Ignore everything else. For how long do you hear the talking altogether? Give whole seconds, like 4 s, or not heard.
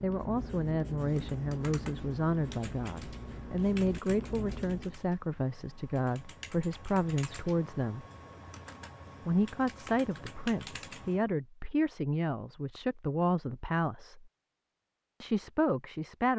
14 s.